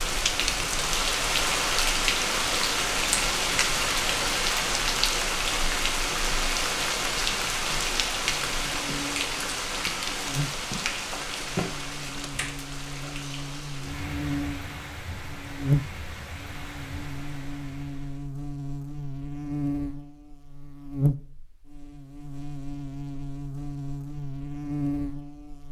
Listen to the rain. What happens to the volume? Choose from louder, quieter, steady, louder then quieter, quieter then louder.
quieter.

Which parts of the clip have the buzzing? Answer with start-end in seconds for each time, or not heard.
8.2-25.6.